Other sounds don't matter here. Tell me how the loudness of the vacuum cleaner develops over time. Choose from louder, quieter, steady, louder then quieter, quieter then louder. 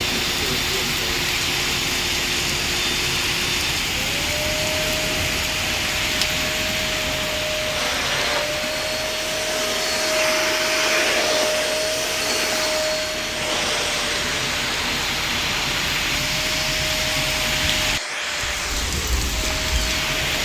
louder then quieter.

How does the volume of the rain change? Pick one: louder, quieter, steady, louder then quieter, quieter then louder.
quieter then louder.